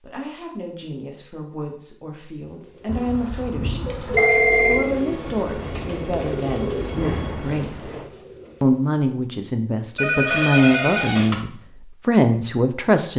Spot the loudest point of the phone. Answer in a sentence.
The volume of the phone peaks at 4 seconds.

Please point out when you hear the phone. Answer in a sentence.
You can hear the phone from 3.9 to 4.8 s and from 9.9 to 11.3 s.